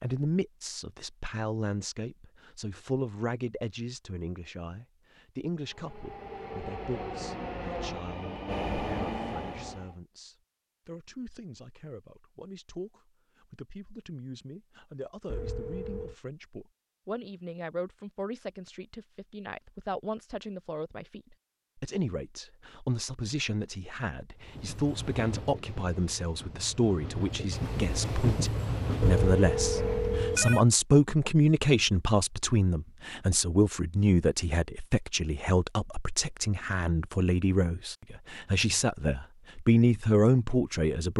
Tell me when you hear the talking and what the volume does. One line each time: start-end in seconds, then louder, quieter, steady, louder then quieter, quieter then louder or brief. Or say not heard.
0.0-41.1 quieter then louder.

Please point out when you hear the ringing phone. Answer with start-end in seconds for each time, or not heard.
15.2-16.1, 29.0-30.6.